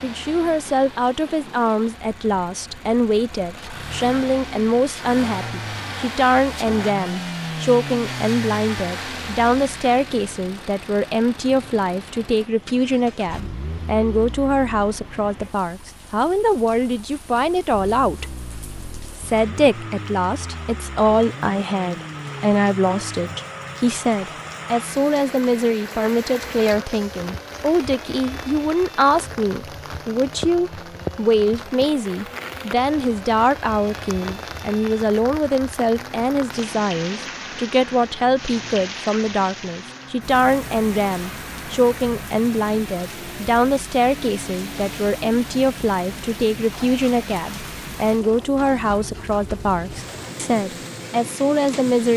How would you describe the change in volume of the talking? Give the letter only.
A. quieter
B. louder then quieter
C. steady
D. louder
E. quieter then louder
C.